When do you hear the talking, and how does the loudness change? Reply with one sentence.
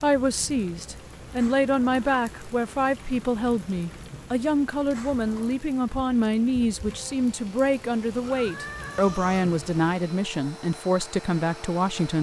You can hear the talking from 0.0 to 12.1 s, at a steady volume.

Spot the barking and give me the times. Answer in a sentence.
You can't hear the barking here.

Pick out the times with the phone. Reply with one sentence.
You can't hear the phone here.